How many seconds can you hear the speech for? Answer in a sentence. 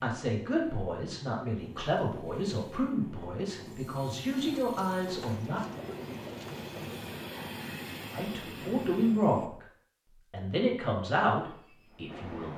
You can hear the speech for 9 seconds altogether.